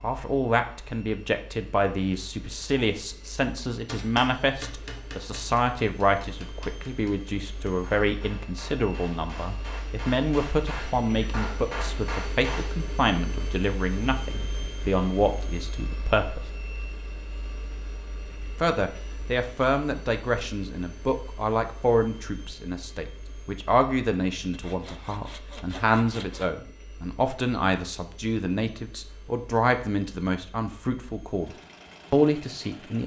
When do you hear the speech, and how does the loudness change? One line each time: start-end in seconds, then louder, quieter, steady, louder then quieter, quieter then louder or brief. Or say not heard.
0.0-16.5 steady
18.6-33.0 steady.